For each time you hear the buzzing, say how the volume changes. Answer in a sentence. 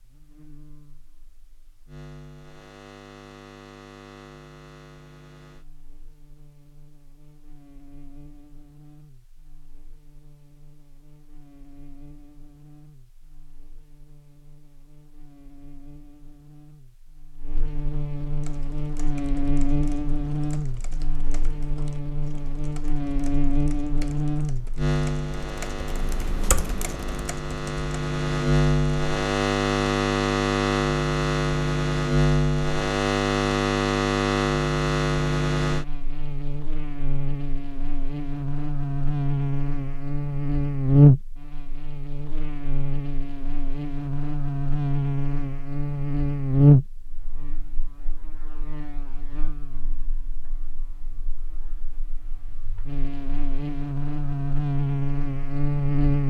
The buzzing can be heard from 0.0 to 56.2 s, getting louder.